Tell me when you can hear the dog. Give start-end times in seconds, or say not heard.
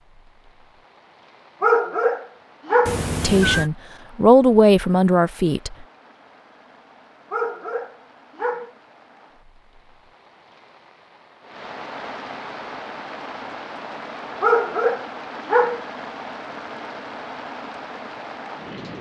1.6-3.0, 7.3-8.7, 14.4-15.8.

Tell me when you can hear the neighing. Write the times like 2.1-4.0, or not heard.
2.9-3.7.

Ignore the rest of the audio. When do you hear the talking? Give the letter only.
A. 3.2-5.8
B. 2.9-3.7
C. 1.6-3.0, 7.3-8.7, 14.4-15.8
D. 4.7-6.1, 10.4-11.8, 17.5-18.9
A.